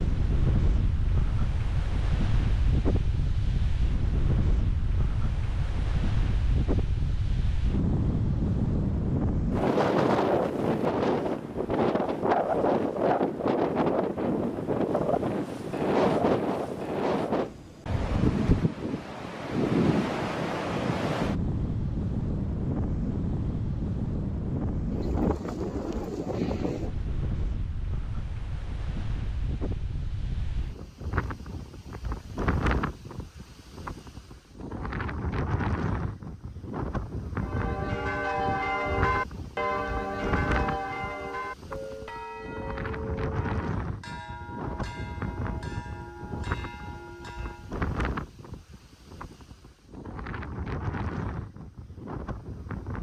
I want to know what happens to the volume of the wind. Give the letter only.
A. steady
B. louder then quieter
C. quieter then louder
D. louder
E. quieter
E.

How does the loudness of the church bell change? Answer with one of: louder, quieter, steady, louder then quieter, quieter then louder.
quieter.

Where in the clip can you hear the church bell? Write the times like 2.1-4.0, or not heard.
37.4-47.8.